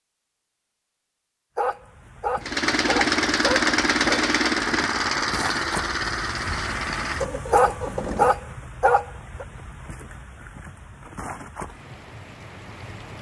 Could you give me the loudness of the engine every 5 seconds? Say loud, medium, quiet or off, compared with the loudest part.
loud, medium, off.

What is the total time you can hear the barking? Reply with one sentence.
You can hear the barking for 5 seconds altogether.